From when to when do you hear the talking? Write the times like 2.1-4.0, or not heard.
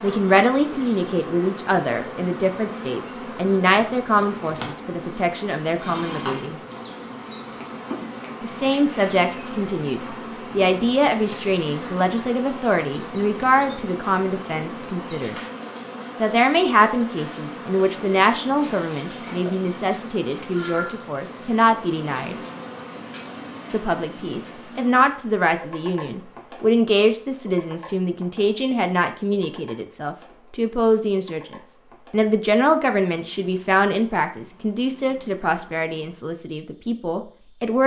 0.0-6.6, 8.4-15.3, 16.2-22.4, 23.7-37.8.